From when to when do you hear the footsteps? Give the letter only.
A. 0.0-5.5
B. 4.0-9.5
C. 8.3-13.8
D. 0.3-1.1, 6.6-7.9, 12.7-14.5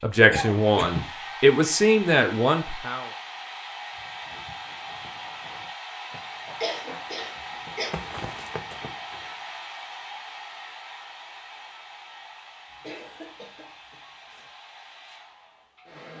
B.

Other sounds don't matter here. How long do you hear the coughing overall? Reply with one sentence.
You can hear the coughing for 4 seconds altogether.